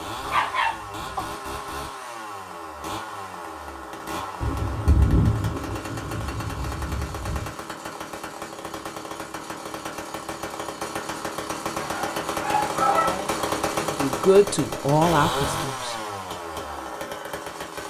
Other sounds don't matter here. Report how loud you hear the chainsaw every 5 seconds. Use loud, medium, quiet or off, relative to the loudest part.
medium, medium, loud, loud.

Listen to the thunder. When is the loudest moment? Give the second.
5 s.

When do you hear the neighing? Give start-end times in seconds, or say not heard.
not heard.